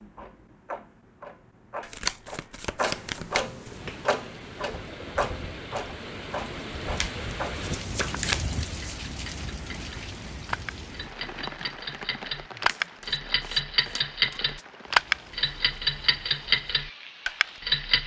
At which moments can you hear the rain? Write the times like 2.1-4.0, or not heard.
3.6-18.0.